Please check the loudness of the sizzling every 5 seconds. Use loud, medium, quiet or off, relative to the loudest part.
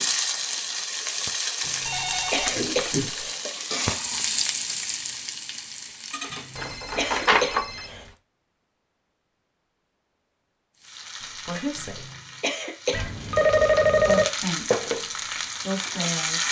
loud, medium, medium, loud.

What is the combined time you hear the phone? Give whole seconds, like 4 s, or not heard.
4 s.